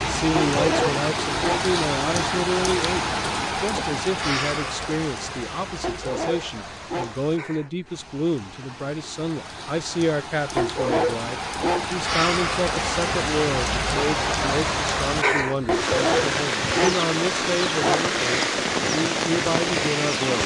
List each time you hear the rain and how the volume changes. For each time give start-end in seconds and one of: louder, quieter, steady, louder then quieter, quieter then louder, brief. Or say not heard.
0.0-20.4 quieter then louder.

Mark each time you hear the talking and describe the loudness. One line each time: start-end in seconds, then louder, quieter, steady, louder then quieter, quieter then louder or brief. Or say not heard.
0.0-20.4 steady.